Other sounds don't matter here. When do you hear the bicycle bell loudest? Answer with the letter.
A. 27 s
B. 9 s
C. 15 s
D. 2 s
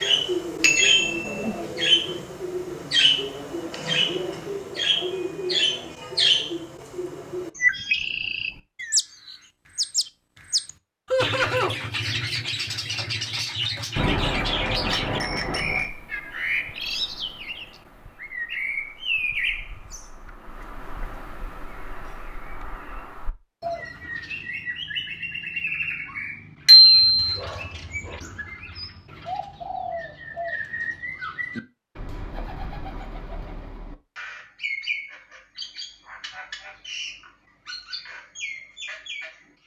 A.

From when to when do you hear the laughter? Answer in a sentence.
You can hear the laughter from 11.1 to 11.8 s.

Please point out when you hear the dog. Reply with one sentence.
You can't hear the dog here.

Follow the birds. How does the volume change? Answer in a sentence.
The loudness of the birds goes down.